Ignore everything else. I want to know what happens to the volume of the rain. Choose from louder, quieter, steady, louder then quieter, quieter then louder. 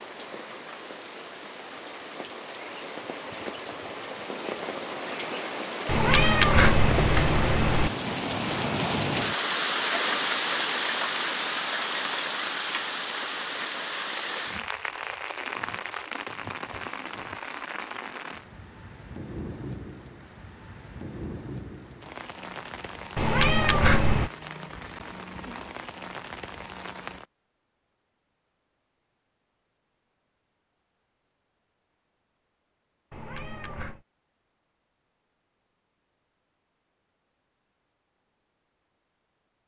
louder then quieter.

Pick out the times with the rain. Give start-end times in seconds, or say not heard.
0.0-27.2.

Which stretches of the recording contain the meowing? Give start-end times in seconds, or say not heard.
5.8-7.9, 23.1-24.3, 33.1-34.0.